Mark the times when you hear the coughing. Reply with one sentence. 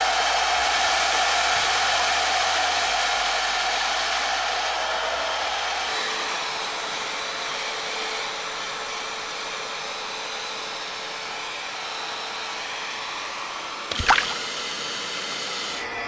The coughing can't be heard in this clip.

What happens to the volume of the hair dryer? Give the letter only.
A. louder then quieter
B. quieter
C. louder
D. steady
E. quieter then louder
B.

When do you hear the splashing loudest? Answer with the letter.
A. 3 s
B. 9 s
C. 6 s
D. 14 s
D.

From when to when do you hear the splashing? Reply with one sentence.
You can hear the splashing from 1.6 to 2.5 s and from 13.9 to 14.4 s.